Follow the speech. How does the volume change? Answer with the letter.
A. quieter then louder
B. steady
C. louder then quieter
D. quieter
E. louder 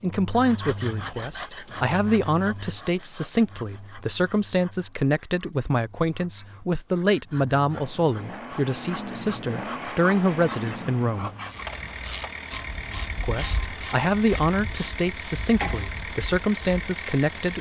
B.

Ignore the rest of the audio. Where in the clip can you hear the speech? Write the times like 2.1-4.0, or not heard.
0.0-11.3, 13.2-17.5.